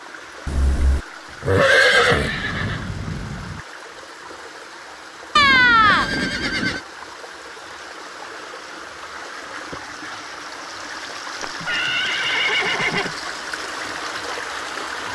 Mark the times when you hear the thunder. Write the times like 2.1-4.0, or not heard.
1.9-3.6.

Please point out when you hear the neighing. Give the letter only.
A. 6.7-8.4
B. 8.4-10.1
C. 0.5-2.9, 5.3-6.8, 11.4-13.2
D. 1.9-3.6
C.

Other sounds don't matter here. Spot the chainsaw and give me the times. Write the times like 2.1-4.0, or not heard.
not heard.